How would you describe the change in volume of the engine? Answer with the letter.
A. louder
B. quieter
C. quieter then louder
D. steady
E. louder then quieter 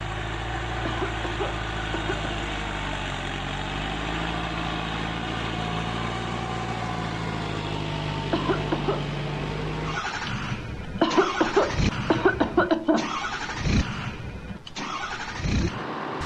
D.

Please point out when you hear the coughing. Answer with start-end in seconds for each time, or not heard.
0.8-2.4, 8.3-9.1, 11.0-13.2.